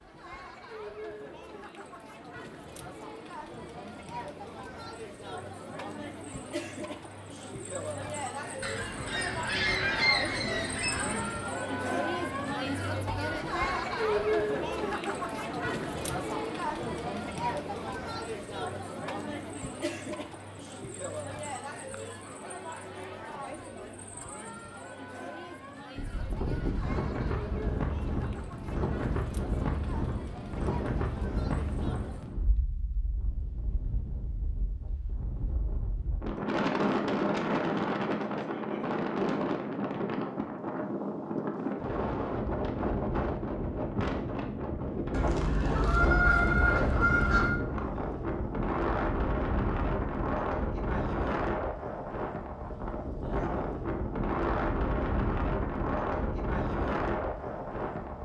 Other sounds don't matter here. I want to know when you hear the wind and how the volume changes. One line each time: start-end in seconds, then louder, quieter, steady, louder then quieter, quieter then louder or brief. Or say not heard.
25.9-58.2 steady.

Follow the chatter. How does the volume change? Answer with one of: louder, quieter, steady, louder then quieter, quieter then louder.
louder then quieter.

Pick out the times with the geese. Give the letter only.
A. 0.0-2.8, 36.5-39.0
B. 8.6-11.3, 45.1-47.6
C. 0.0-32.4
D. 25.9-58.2
B.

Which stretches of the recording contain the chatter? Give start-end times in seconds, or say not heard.
0.0-32.4.